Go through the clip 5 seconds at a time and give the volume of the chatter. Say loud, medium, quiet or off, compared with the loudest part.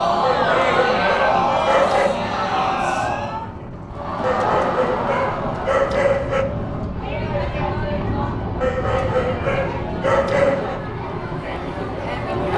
loud, medium, medium.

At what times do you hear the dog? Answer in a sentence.
The dog can be heard from 0.2 to 2.1 s, from 4.2 to 6.5 s and from 8.6 to 10.8 s.